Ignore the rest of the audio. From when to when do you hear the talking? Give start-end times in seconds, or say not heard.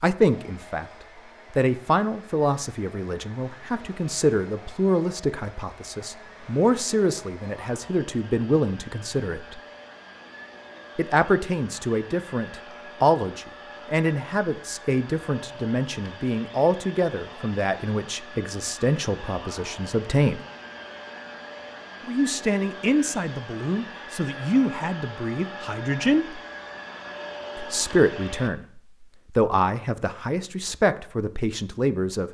0.0-0.8, 1.5-9.6, 10.9-20.4, 22.1-26.4, 27.6-32.2.